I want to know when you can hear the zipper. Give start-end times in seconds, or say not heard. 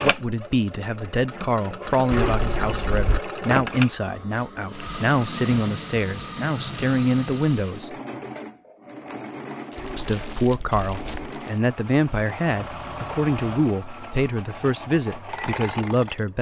2.1-3.2, 9.8-11.3.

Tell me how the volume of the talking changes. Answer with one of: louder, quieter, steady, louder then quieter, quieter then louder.
steady.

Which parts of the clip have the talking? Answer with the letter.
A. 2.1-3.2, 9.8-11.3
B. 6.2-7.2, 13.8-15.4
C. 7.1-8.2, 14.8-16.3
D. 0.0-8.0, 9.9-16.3
D.